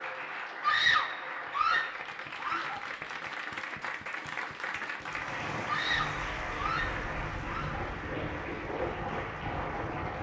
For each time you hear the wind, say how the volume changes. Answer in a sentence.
You can hear the wind from 5.0 to 10.1 s, getting louder.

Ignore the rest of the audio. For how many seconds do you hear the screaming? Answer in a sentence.
The screaming can be heard for 4 seconds in total.